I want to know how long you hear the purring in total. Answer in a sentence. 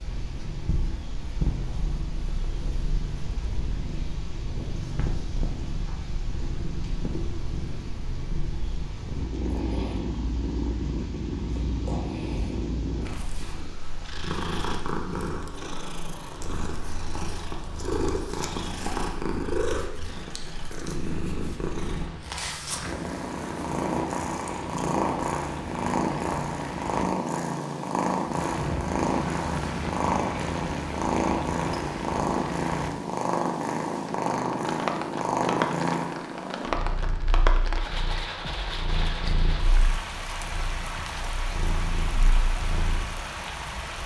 The purring can be heard for 44 seconds in total.